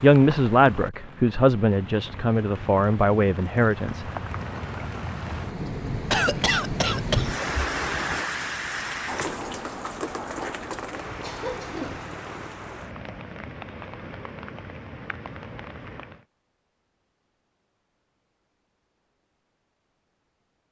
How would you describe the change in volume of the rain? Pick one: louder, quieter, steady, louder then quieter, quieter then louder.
louder then quieter.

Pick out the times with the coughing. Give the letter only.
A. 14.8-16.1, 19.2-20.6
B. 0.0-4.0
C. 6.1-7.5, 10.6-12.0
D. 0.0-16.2
C.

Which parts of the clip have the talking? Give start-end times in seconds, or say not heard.
0.0-4.0.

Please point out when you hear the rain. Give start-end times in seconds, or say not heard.
0.0-16.2.